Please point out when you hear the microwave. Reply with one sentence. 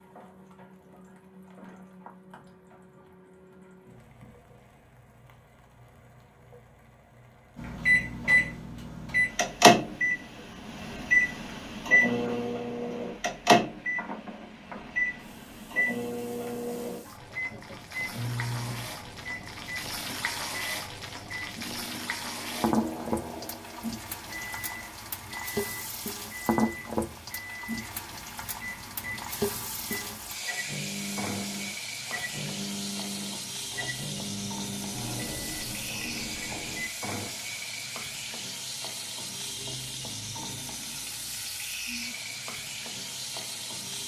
You can hear the microwave from 7.5 to 37.0 s.